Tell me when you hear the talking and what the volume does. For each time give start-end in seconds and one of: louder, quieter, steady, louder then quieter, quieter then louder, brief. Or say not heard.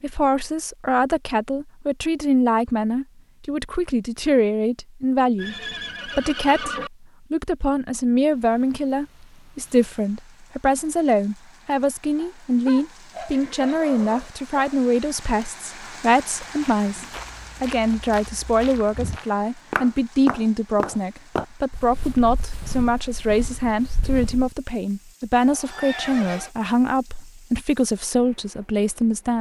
0.0-29.3 steady.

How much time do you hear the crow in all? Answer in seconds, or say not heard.
not heard.